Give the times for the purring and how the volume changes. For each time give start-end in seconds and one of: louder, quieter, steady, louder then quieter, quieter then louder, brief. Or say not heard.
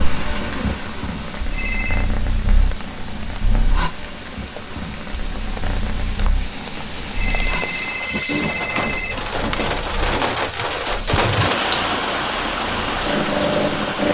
0.0-14.1 quieter then louder.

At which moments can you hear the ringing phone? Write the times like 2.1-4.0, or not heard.
1.5-2.1, 7.1-9.7.